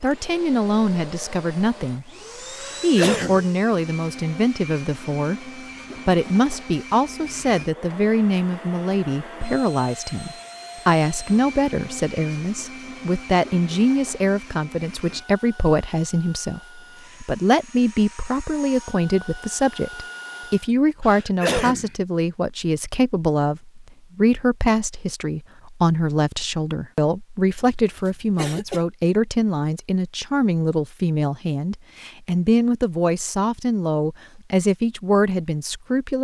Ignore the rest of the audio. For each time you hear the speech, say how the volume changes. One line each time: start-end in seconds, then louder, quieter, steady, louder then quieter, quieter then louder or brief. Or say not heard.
0.0-36.1 steady.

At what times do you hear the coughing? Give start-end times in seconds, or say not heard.
2.6-3.5, 21.0-21.9, 27.6-28.8.